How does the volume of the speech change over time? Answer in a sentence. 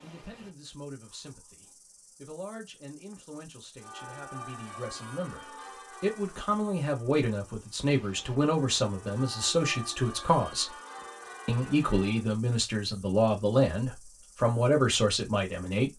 The loudness of the speech goes up.